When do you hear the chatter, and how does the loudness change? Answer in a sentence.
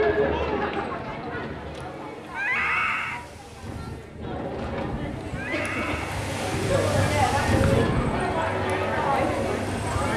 You can hear the chatter from 0.0 to 10.1 s, getting quieter then louder.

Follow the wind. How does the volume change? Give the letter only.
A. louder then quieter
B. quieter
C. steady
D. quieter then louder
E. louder
A.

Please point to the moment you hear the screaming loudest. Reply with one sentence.
The loudest moment of the screaming is at 3 seconds.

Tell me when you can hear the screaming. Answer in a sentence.
The screaming can be heard from 2.3 to 3.2 s and from 5.3 to 6.2 s.